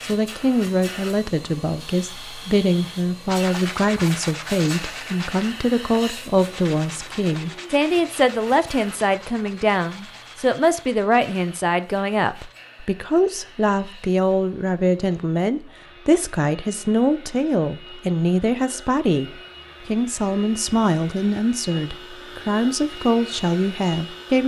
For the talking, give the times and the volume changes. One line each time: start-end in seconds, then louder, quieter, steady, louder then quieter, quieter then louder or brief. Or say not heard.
0.0-24.4 steady.